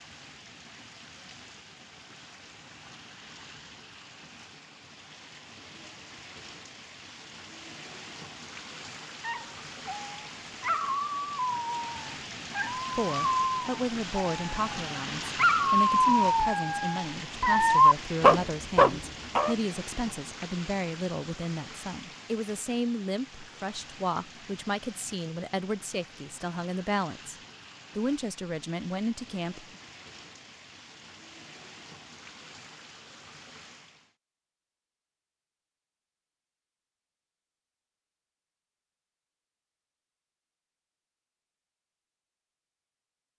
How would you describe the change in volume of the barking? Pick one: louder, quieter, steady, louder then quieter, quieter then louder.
louder.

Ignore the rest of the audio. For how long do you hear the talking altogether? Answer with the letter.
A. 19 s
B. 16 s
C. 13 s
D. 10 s
B.